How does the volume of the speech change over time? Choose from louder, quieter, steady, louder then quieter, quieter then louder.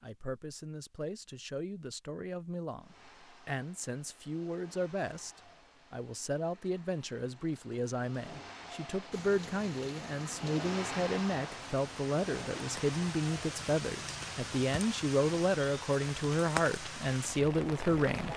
louder.